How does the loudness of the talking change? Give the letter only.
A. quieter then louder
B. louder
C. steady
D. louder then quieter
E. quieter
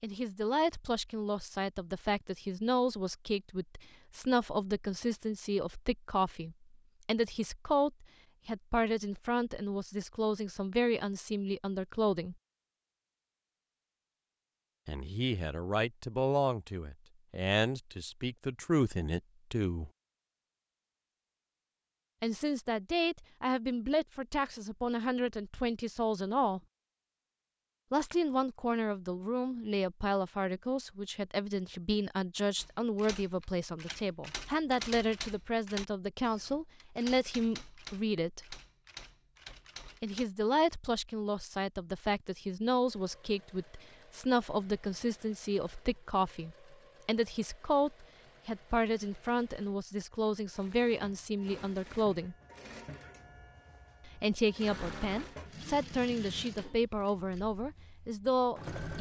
C.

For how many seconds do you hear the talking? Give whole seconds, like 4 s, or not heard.
50 s.